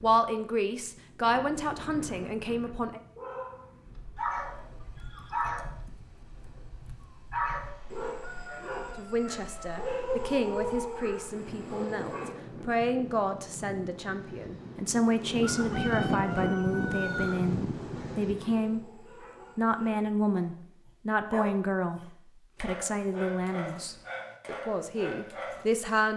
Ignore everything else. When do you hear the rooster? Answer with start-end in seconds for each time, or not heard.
8.1-9.8, 15.4-17.4.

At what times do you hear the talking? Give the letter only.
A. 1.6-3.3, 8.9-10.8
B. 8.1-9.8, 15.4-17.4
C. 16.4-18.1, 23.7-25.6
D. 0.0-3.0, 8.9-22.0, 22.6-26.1
D.